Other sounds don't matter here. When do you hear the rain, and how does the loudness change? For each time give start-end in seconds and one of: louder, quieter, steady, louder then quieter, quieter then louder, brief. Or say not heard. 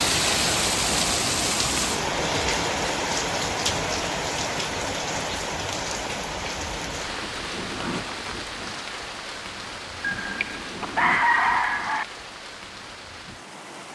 0.0-13.9 quieter.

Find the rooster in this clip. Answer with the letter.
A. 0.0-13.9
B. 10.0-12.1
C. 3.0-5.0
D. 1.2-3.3
B.